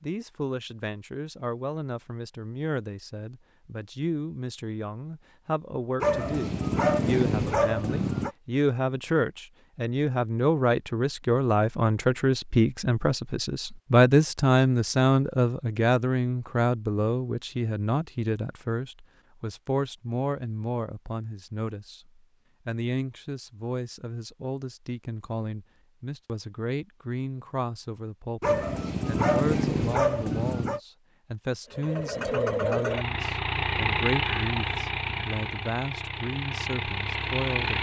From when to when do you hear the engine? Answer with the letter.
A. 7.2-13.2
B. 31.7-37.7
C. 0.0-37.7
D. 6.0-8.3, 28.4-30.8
B.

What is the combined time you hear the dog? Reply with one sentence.
You can hear the dog for 5 seconds altogether.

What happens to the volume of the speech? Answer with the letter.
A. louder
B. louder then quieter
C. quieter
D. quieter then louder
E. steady
B.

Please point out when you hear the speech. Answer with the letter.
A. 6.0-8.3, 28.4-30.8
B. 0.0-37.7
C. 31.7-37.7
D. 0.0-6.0
B.